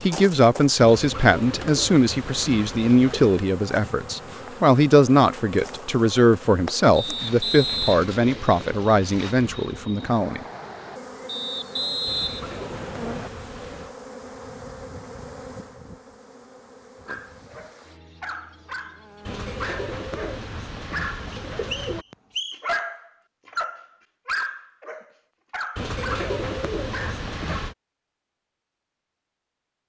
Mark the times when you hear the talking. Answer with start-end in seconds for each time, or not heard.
0.0-10.4.